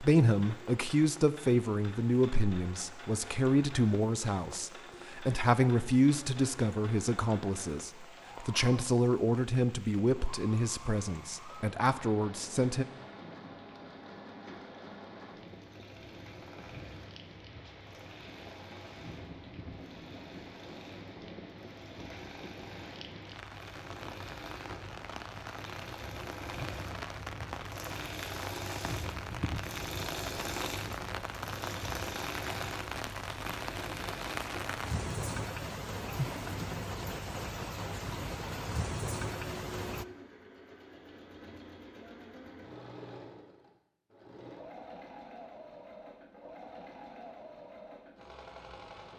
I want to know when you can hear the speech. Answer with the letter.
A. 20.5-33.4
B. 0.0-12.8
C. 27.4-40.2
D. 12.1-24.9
B.